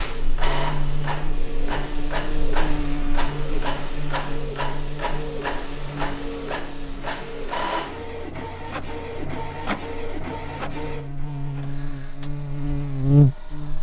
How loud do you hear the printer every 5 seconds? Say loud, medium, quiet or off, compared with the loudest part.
loud, loud, medium.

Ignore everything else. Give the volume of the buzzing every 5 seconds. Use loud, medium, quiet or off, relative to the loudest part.
medium, quiet, loud.